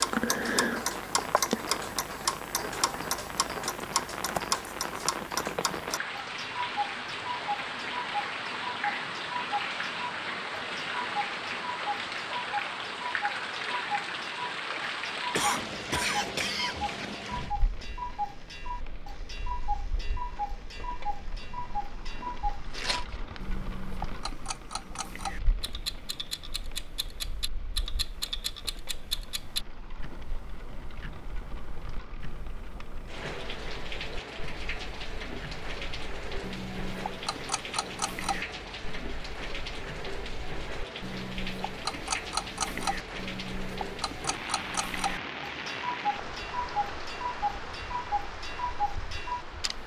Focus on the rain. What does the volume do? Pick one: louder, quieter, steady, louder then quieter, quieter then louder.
quieter then louder.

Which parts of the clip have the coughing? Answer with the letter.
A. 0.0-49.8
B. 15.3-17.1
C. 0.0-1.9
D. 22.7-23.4
B.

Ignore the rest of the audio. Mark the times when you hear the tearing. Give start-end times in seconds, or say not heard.
22.7-23.4.